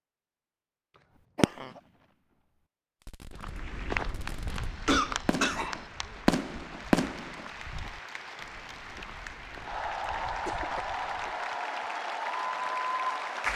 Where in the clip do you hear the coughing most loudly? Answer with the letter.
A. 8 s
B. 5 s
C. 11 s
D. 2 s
B.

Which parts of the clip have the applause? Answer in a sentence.
You can hear the applause from 3.5 to 13.5 s.